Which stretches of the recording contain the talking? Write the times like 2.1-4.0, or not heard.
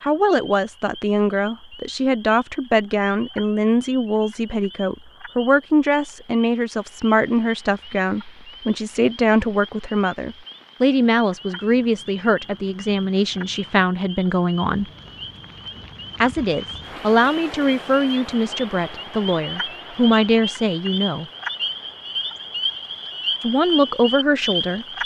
0.0-14.8, 16.2-21.2, 23.4-24.9.